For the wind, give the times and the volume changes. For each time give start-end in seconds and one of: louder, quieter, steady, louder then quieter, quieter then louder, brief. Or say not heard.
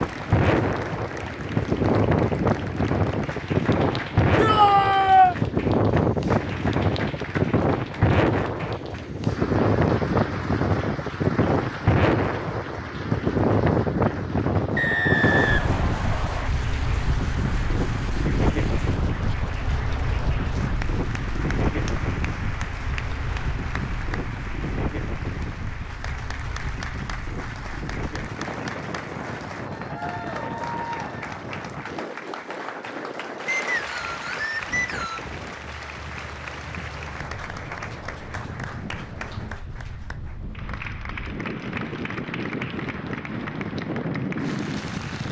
0.0-45.2 quieter.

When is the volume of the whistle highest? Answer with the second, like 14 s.
15 s.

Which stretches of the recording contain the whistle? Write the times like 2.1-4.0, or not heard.
14.8-16.5, 33.5-35.3.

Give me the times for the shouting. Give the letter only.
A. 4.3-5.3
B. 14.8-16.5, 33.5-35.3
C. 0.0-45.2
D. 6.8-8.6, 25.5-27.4
A.